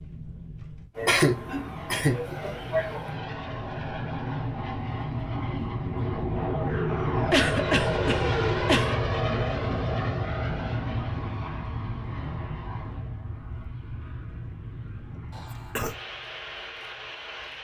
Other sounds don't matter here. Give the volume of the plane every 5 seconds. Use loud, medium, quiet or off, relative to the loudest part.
medium, loud, medium, quiet.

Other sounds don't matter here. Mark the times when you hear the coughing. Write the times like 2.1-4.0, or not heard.
0.9-3.0, 7.3-8.9, 15.3-15.9.